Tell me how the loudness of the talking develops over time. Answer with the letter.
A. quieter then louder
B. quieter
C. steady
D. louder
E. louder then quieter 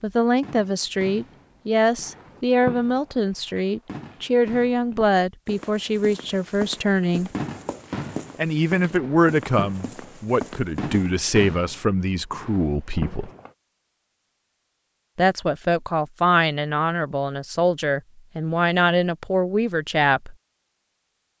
C.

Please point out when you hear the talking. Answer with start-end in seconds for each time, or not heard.
0.0-7.3, 8.3-13.3, 15.2-20.4.